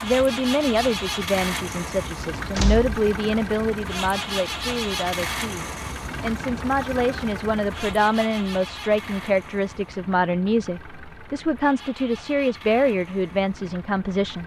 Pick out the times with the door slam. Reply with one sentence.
You can hear the door slam from 2.5 to 3.0 s.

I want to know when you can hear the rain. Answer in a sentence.
You can't hear the rain here.